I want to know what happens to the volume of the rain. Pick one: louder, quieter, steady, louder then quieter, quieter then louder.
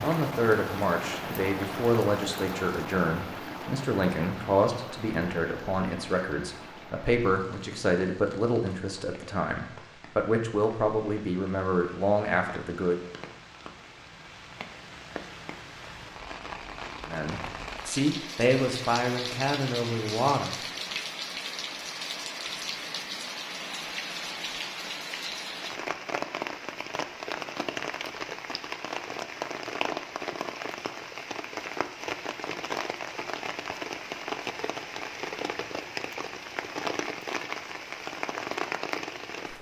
quieter then louder.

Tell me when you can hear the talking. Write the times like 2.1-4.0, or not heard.
0.0-13.0, 17.1-20.6.